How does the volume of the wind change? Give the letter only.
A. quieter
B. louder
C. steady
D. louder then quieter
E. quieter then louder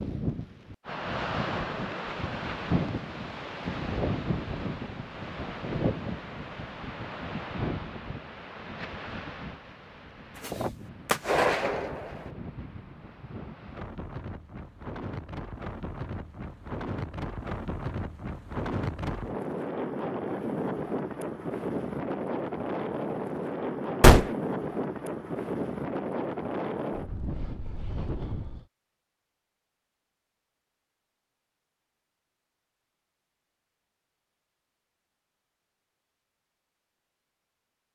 E.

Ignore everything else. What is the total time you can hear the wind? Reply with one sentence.
The wind can be heard for 29 seconds in total.